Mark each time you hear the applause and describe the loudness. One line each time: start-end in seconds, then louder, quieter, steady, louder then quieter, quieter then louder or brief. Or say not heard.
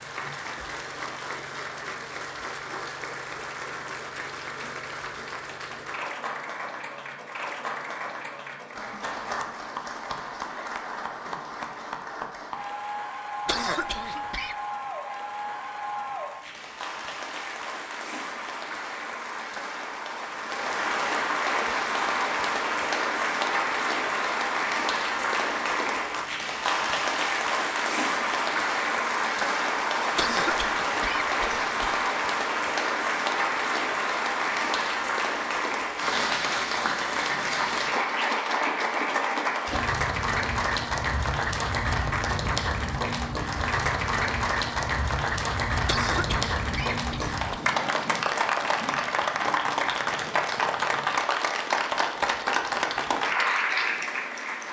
0.0-54.6 louder.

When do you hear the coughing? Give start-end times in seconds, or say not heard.
13.4-14.6, 30.1-32.0, 45.9-47.4.